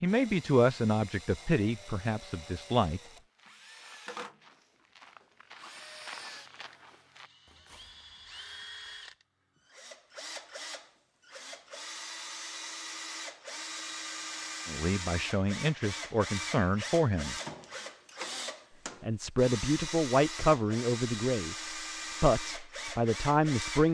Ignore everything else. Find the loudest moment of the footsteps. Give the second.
6 s.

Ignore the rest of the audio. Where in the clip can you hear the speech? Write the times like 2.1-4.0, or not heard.
0.0-3.0, 14.7-17.4, 19.0-21.6, 22.2-23.8.